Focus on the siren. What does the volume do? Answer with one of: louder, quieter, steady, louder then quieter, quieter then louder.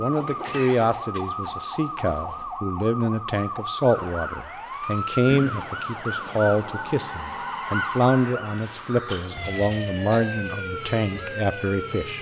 steady.